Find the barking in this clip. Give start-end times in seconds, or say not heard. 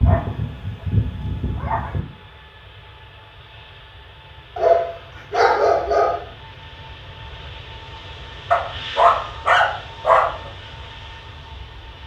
0.0-2.0, 4.5-6.2, 8.5-10.5.